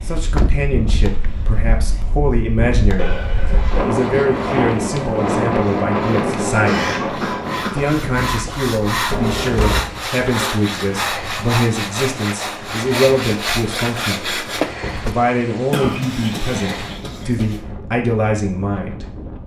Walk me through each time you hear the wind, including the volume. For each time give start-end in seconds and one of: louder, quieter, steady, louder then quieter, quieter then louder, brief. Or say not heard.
0.0-19.4 louder then quieter.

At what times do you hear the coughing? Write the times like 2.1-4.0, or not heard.
3.0-3.9, 6.7-8.0, 15.7-17.6.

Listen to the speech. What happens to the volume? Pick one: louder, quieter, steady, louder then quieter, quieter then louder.
steady.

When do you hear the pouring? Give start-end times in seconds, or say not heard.
not heard.